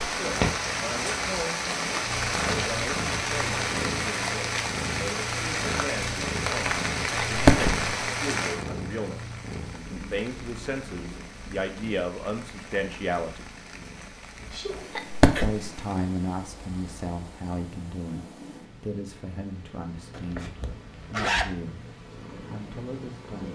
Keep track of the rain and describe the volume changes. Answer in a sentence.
The loudness of the rain goes down.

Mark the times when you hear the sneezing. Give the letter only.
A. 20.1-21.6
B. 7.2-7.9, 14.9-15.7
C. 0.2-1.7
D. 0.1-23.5
B.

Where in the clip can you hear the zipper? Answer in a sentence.
You can hear the zipper from 20.1 to 21.6 s.